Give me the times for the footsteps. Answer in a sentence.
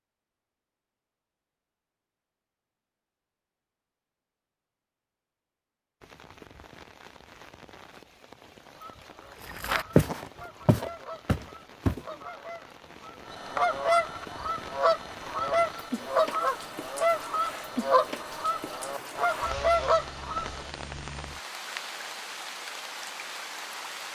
The footsteps can be heard from 9.4 to 12.0 s.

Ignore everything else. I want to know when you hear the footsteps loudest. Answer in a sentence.
The loudest moment of the footsteps is at 10 seconds.